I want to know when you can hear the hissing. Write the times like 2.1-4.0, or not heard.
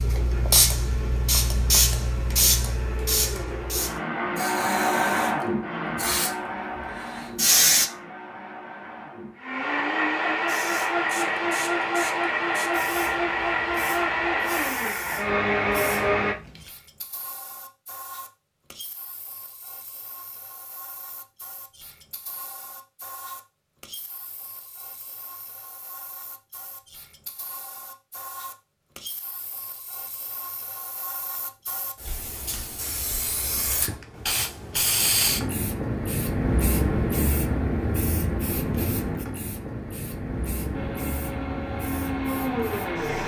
0.0-7.9, 10.4-43.2.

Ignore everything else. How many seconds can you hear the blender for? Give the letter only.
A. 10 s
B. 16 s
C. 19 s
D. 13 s
C.